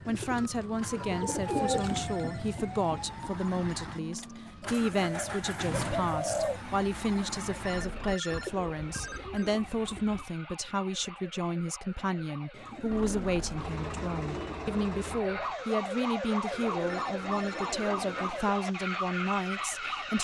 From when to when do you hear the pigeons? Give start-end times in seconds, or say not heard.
0.1-2.0, 4.6-6.6, 8.2-10.3, 12.5-14.6, 16.5-18.5.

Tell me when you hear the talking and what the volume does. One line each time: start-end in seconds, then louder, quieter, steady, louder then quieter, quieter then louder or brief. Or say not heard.
0.1-20.1 steady.